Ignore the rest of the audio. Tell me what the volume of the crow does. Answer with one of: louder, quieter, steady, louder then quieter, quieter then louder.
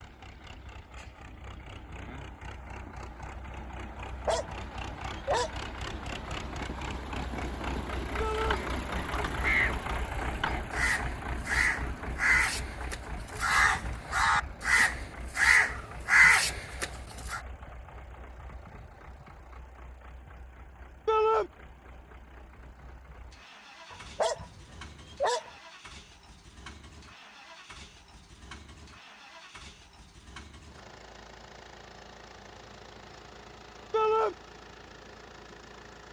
louder.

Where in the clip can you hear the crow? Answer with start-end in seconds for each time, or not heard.
8.3-17.4.